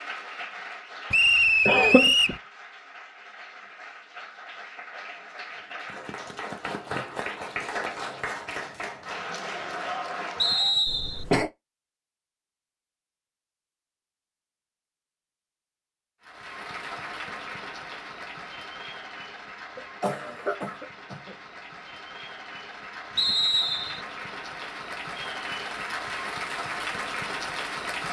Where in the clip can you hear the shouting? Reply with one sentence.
The shouting can't be heard in this clip.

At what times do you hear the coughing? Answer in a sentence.
You can hear the coughing from 1.6 to 2.4 s, from 10.8 to 11.5 s and from 19.8 to 21.4 s.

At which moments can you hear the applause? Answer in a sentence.
The applause can be heard from 0.0 to 10.8 s and from 16.2 to 28.0 s.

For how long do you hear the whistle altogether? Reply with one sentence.
The whistle can be heard for 3 seconds in total.